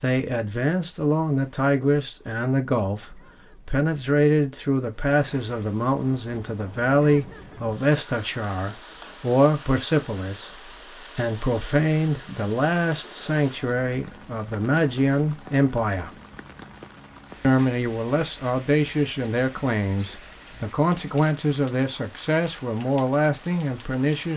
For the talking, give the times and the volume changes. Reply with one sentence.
The talking can be heard from 0.0 to 16.1 s, at a steady volume; and from 17.4 to 24.3 s, at a steady volume.